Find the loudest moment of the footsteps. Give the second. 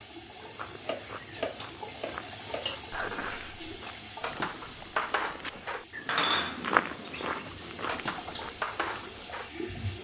7 s.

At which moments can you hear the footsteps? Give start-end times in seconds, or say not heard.
0.3-9.2.